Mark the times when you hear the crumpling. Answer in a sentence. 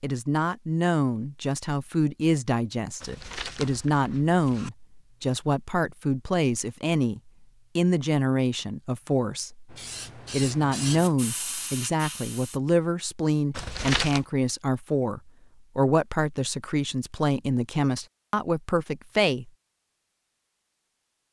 The crumpling can be heard from 3.0 to 4.7 s and from 13.5 to 14.2 s.